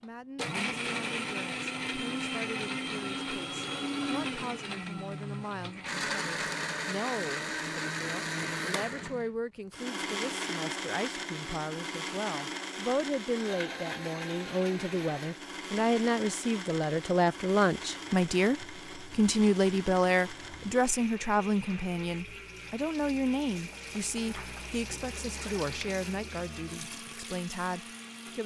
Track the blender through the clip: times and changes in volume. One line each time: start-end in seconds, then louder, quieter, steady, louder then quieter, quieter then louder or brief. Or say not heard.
0.0-28.4 quieter.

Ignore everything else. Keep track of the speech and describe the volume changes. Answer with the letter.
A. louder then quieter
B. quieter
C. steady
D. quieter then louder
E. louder
A.